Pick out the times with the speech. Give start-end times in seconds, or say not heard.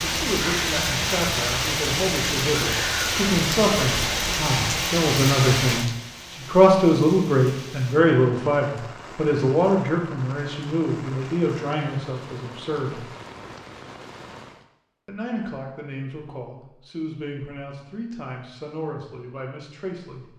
0.0-13.1, 15.1-20.3.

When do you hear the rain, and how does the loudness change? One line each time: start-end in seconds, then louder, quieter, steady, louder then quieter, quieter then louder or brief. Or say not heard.
0.0-14.7 quieter.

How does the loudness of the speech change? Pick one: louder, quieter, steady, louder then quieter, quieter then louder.
louder then quieter.